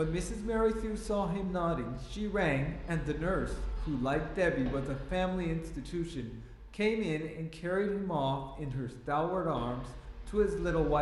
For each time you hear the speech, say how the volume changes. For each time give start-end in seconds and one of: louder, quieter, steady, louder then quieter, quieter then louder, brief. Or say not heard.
0.0-10.9 steady.